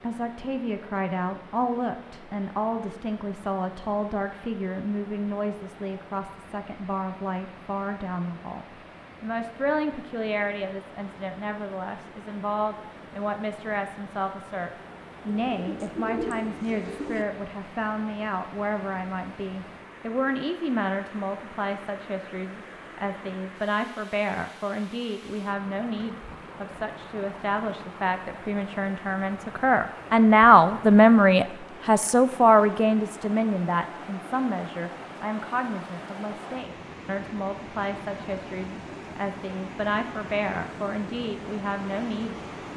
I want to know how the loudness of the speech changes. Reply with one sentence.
The volume of the speech goes up, then down.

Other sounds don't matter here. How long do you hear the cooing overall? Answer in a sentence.
The cooing can be heard for 2 seconds in total.